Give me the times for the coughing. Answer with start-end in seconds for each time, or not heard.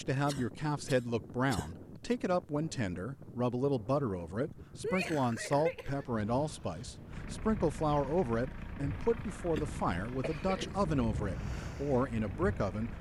0.2-2.1, 4.8-6.0, 9.2-10.8.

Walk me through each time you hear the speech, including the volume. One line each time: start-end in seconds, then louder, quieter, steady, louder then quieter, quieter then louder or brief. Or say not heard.
0.0-12.9 steady.